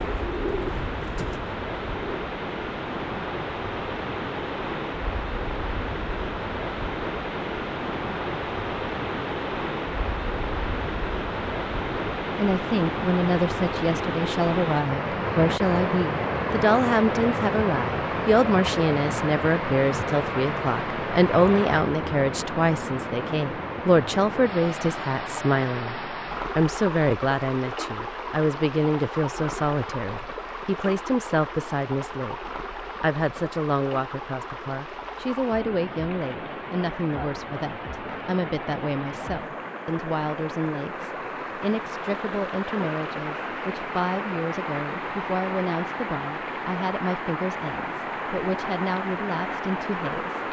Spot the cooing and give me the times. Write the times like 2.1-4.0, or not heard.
0.0-2.2.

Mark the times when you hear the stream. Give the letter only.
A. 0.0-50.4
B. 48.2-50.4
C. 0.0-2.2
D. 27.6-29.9
A.